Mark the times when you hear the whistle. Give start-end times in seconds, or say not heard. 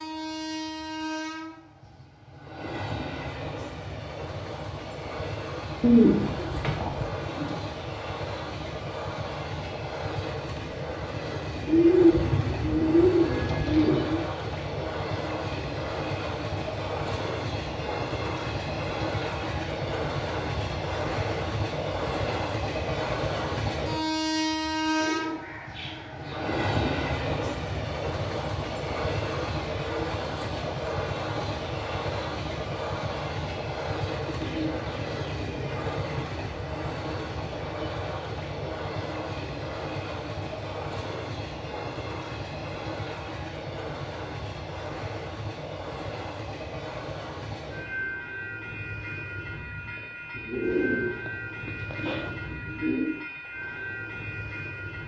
not heard.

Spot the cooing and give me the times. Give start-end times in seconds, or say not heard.
5.8-7.5, 11.7-14.2, 25.0-26.9, 34.2-36.2, 50.4-53.1.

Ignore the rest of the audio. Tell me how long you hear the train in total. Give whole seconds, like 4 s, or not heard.
55 s.